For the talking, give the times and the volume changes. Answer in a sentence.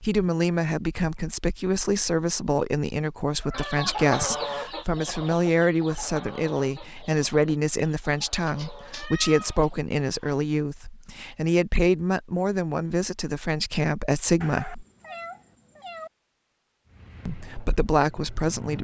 The talking can be heard from 0.0 to 14.8 s, at a steady volume; and briefly from 17.2 to 18.8 s.